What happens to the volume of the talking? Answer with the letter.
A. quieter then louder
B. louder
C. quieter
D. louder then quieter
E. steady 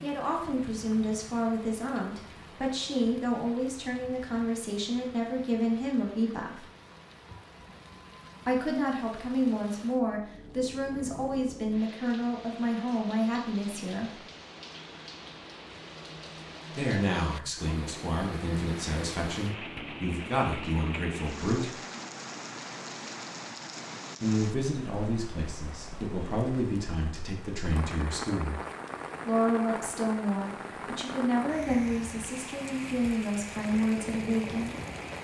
E.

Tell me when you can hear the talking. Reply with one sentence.
The talking can be heard from 0.0 to 6.7 s, from 8.4 to 14.2 s, from 16.7 to 21.8 s, from 24.2 to 28.6 s and from 29.2 to 34.8 s.